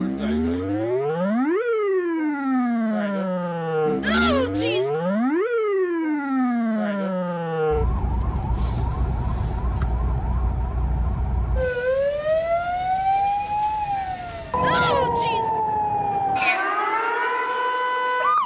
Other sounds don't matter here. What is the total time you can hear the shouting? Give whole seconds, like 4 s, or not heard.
2 s.